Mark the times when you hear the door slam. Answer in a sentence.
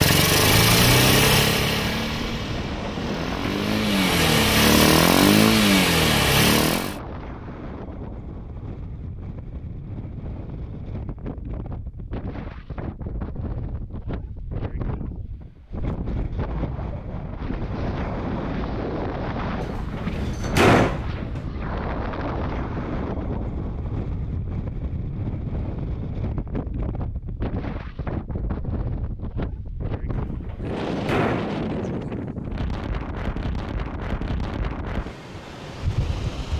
You can hear the door slam from 2.6 to 3.5 s, from 19.6 to 21.4 s and from 30.1 to 31.6 s.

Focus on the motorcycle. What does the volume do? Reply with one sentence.
The loudness of the motorcycle goes down, then up.